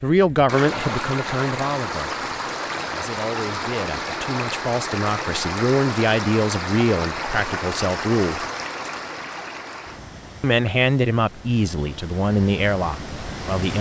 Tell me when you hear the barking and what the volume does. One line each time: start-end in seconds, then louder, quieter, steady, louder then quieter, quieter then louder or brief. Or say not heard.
not heard.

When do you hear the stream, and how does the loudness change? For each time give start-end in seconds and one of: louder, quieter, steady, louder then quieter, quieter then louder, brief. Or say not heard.
0.1-13.7 quieter.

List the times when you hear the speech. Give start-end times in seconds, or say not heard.
0.0-8.4, 10.4-13.7.